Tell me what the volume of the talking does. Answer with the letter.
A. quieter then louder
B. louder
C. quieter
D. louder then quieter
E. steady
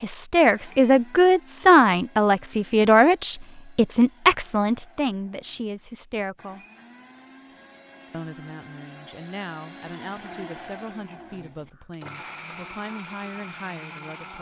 C.